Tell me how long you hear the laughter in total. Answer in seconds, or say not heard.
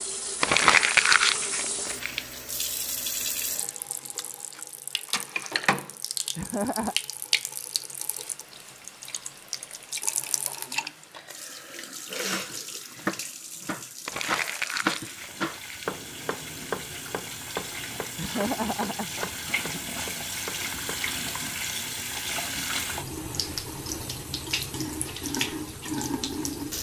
2 s.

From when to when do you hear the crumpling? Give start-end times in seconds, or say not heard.
0.4-2.2, 14.1-15.8.